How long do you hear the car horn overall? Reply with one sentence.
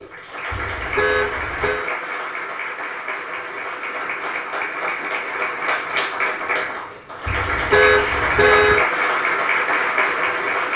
The car horn can be heard for 3 seconds in total.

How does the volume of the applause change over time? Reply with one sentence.
The loudness of the applause goes up.